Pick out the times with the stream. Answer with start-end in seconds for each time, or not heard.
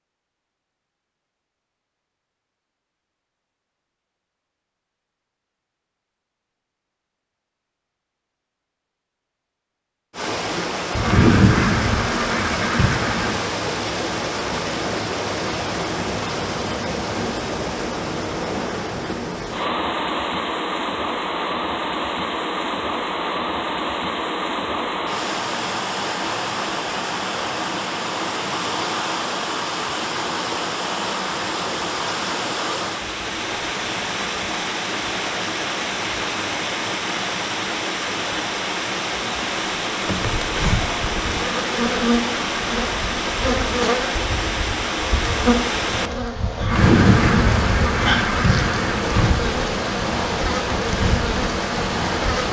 10.1-52.4.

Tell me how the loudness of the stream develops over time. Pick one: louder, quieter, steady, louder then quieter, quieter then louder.
steady.